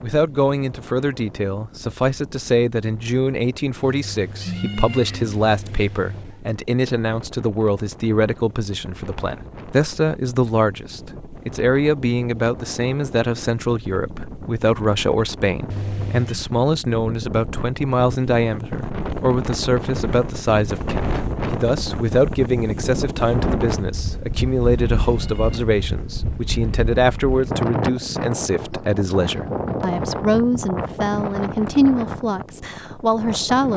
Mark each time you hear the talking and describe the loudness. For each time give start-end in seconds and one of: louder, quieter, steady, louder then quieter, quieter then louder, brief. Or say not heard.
0.0-33.7 steady.